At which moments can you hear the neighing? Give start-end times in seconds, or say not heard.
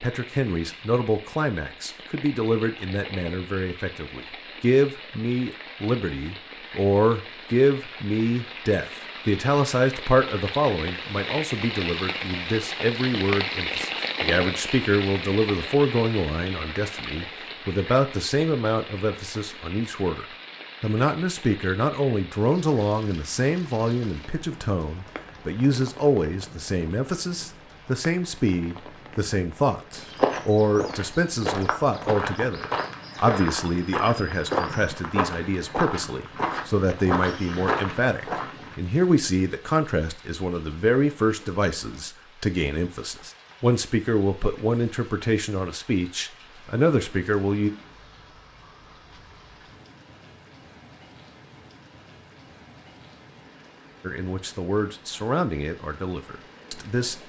not heard.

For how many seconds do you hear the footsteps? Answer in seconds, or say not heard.
9 s.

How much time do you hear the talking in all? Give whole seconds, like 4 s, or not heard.
51 s.